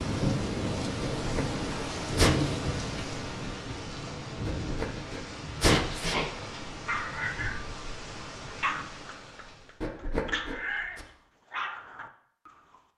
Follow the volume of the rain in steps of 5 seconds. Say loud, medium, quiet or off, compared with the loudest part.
loud, medium, off.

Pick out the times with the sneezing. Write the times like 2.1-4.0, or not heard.
1.2-2.3, 4.5-6.4, 9.8-11.1.